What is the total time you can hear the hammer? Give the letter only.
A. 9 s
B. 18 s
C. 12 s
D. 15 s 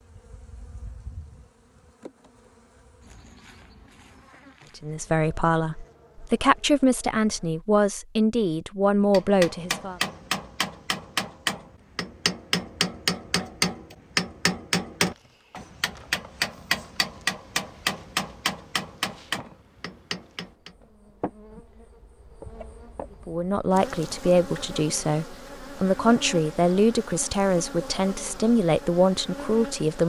C.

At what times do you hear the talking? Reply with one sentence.
The talking can be heard from 4.8 to 10.0 s and from 23.2 to 30.0 s.